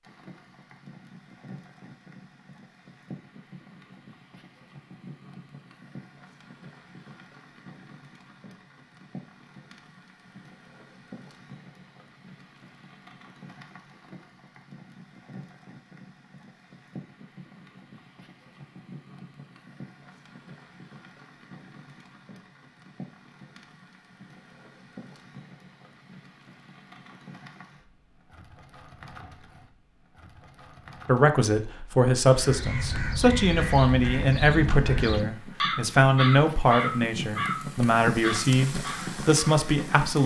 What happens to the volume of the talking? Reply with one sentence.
The loudness of the talking stays about the same.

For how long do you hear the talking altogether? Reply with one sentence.
You can hear the talking for 9 seconds altogether.